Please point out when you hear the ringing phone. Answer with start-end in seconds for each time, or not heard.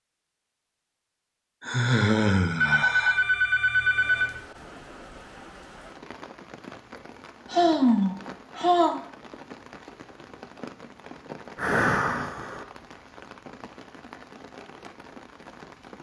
2.5-4.4.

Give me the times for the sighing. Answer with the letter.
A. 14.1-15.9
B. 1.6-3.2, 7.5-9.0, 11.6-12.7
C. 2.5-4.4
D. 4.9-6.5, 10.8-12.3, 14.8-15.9
B.